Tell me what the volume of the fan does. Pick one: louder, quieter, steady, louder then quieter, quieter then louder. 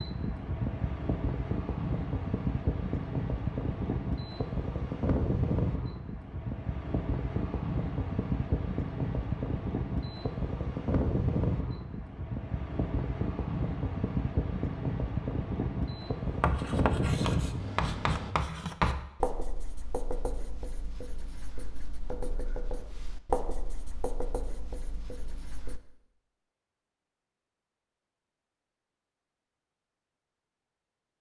steady.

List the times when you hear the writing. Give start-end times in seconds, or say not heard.
16.4-25.8.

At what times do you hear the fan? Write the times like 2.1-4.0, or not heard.
0.0-18.4.